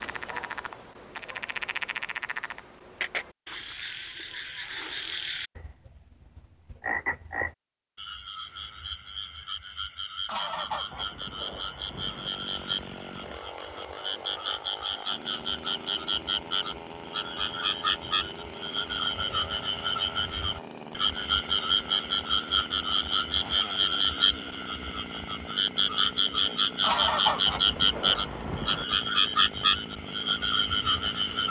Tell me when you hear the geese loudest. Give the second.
27 s.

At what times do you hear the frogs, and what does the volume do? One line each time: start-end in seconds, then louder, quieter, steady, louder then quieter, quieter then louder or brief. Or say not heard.
0.0-31.4 louder.